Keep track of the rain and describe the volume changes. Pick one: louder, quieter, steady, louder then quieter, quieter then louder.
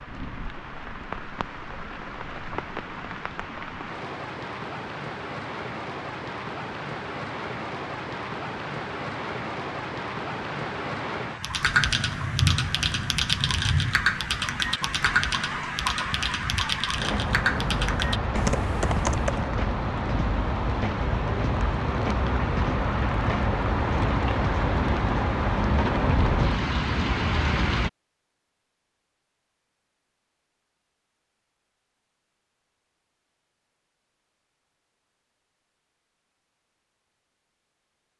louder.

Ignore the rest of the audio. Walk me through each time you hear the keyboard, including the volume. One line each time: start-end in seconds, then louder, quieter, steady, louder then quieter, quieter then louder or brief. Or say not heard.
11.4-19.4 steady.